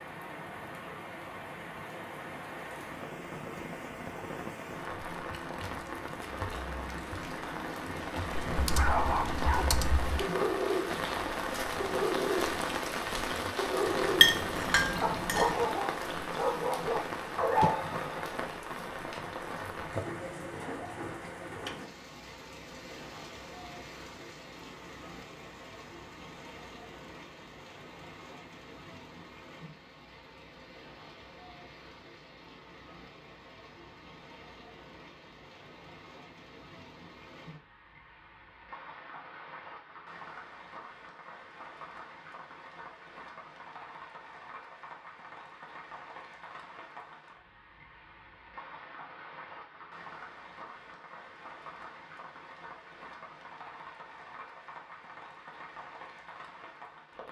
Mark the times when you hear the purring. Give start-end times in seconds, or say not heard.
not heard.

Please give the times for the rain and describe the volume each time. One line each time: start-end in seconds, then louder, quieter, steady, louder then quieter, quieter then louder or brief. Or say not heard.
0.0-57.2 quieter.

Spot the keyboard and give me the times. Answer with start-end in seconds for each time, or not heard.
8.3-10.3.